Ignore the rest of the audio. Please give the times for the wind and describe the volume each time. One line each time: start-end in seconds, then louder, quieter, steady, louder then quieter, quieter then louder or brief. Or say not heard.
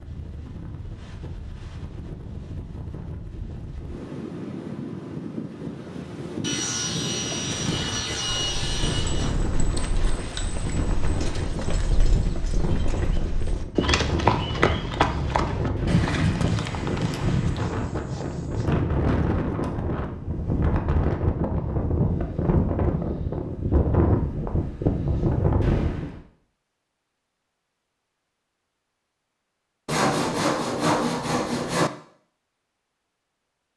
0.0-26.2 louder.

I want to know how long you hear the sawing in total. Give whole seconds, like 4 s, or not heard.
7 s.